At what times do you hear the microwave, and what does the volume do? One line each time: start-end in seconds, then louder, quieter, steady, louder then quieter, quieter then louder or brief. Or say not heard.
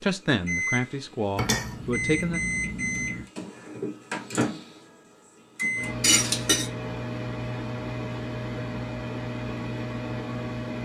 0.1-10.7 steady.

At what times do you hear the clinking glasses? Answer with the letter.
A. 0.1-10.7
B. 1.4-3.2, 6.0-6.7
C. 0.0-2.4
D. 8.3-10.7
B.